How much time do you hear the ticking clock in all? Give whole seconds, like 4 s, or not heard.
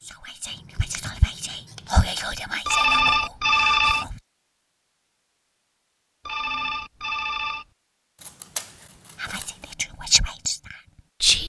not heard.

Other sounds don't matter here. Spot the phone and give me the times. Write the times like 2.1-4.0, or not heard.
2.6-4.0, 6.2-7.7.